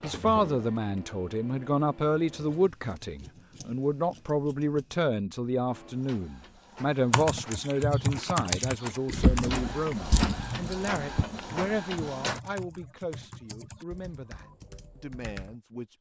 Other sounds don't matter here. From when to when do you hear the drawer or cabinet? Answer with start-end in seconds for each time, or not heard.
9.1-11.2.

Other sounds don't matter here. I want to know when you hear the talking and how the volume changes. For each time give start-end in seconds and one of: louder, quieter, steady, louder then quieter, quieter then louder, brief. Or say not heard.
0.0-15.9 quieter.